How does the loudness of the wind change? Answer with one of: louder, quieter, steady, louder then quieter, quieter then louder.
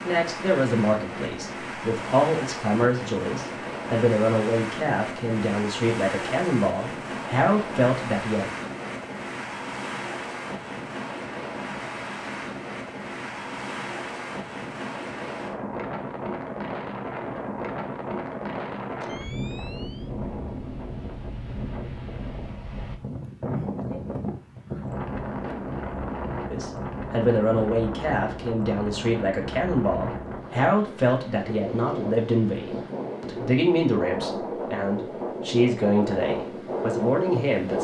steady.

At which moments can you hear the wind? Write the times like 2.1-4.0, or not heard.
0.0-37.7.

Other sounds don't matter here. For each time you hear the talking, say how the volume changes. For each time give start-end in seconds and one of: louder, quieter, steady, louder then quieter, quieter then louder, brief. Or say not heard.
0.0-8.5 steady
26.5-37.7 steady.